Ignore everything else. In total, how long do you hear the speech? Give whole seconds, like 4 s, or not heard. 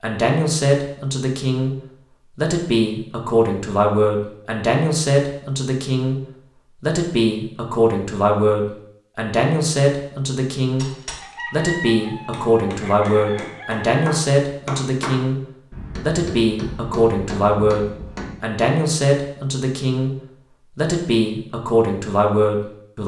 20 s.